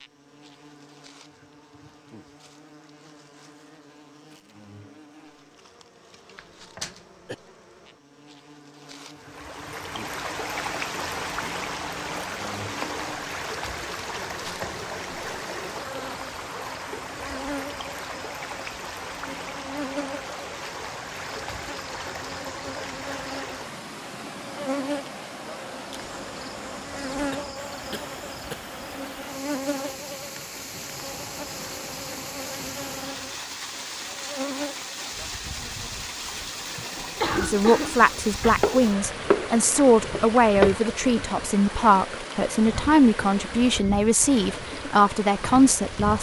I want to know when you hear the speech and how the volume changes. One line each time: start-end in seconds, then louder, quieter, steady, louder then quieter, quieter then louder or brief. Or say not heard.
37.4-46.1 steady.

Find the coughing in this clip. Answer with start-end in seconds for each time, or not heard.
6.3-7.3, 27.3-28.7, 36.8-38.6.